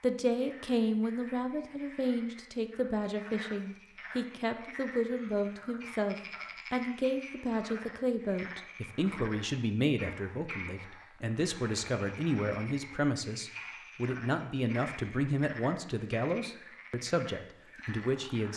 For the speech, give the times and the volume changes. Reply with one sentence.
The speech can be heard from 0.0 to 18.5 s, at a steady volume.